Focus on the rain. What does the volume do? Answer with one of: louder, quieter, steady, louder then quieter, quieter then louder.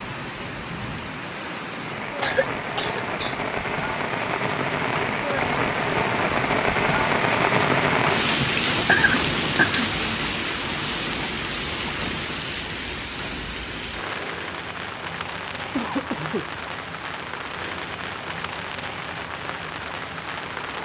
louder then quieter.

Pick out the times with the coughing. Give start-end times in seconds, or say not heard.
2.2-3.4, 8.4-9.8, 15.8-16.5.